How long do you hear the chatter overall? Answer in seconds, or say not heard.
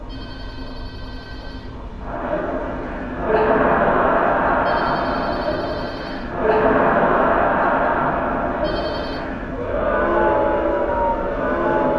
10 s.